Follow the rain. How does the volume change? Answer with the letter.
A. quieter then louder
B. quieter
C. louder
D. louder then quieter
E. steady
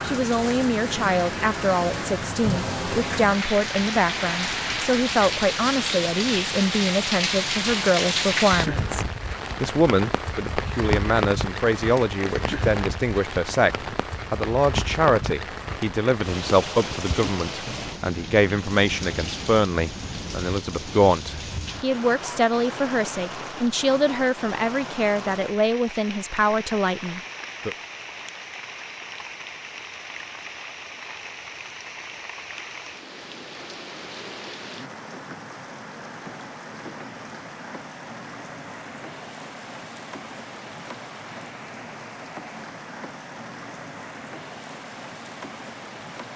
B.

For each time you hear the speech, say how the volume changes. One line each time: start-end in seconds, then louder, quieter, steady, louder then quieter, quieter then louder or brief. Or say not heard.
0.0-27.8 steady.